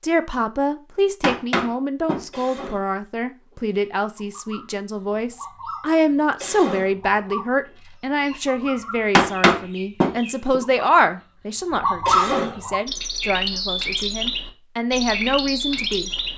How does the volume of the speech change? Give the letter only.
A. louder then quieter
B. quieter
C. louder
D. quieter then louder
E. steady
E.